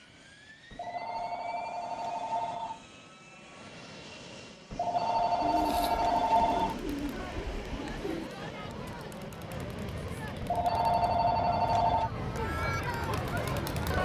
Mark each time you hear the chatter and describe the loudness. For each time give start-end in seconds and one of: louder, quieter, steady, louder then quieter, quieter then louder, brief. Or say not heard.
5.7-13.9 louder.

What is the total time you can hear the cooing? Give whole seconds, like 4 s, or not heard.
3 s.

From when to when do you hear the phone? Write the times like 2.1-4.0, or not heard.
0.7-2.9, 4.7-6.8, 10.4-12.1.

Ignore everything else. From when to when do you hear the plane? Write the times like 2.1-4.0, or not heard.
0.0-13.9.